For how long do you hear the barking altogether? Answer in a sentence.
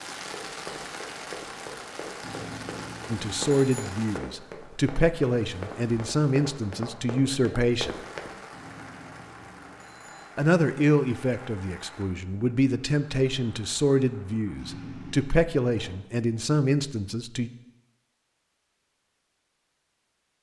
The barking can't be heard in this clip.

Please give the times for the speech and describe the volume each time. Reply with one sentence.
The speech can be heard from 3.0 to 8.0 s, at a steady volume; and from 10.3 to 17.5 s, at a steady volume.